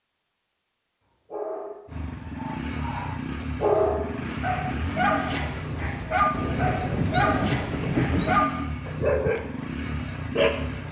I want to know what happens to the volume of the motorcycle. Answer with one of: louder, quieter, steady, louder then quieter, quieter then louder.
steady.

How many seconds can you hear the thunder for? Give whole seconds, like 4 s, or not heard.
2 s.